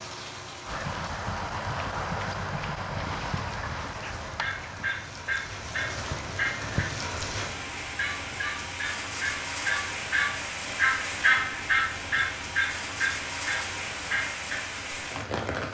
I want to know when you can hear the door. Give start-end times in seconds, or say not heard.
not heard.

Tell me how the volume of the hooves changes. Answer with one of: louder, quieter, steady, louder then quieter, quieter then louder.
quieter.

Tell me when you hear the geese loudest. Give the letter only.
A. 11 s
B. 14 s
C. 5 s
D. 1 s
A.